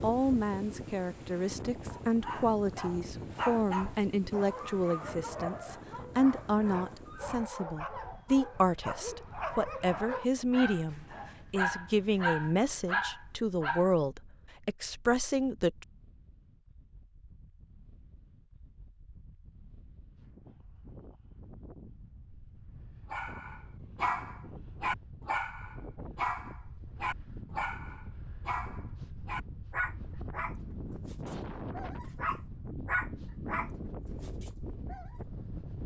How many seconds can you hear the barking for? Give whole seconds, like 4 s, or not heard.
24 s.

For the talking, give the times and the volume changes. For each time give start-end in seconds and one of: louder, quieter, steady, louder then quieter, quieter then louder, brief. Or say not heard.
0.0-15.8 steady.